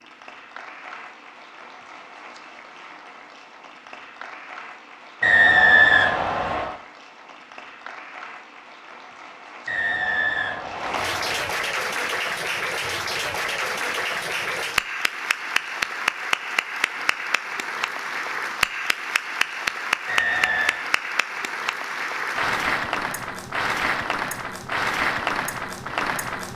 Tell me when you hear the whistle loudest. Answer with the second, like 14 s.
6 s.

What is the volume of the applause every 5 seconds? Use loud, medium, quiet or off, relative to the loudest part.
quiet, quiet, loud, loud, loud, loud.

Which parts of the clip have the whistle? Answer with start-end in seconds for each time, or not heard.
5.2-6.8, 9.7-11.4, 20.1-20.9.